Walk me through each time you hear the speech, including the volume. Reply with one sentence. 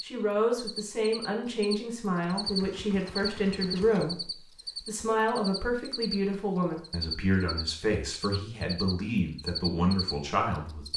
The speech can be heard from 0.0 to 10.8 s, at a steady volume.